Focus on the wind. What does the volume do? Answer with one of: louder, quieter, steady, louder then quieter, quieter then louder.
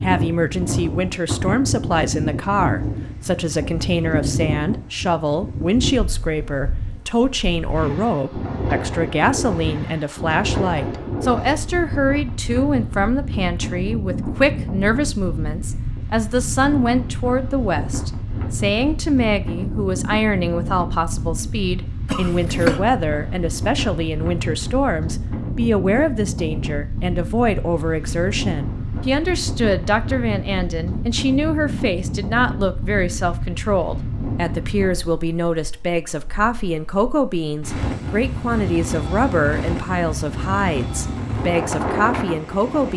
steady.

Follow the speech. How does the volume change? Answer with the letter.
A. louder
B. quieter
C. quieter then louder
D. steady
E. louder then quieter
D.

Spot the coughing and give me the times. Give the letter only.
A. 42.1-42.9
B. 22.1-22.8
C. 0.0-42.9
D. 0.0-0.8
B.